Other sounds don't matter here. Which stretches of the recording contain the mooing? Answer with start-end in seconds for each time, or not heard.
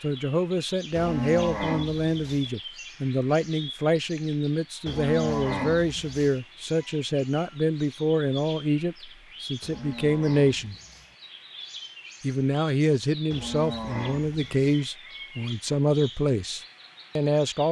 0.9-2.5, 4.8-6.4, 9.6-11.2, 13.3-14.8.